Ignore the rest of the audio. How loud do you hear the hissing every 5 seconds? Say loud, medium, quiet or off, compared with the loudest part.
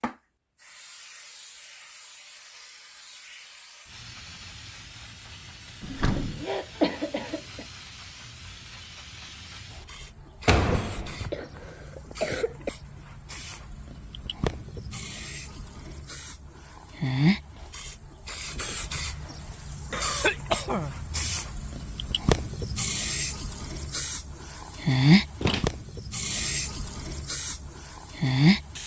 quiet, quiet, quiet, medium, medium, loud.